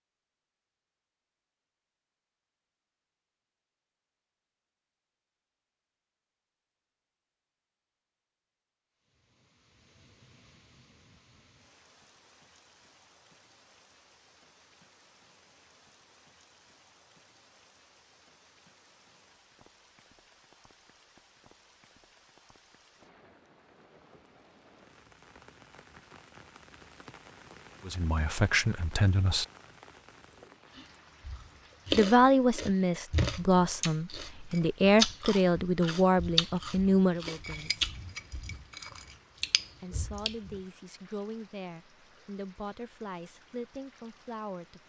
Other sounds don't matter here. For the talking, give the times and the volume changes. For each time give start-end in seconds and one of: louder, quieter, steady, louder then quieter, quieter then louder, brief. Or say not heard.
27.9-29.4 brief
31.9-37.9 steady
39.8-44.8 steady.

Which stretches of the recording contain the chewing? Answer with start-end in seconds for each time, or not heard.
30.4-40.6.